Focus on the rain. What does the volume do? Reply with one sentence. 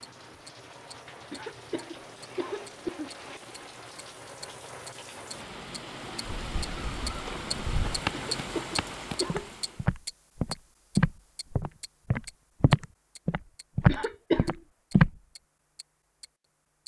The volume of the rain goes up.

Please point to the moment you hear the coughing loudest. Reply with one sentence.
The volume of the coughing peaks at 14 seconds.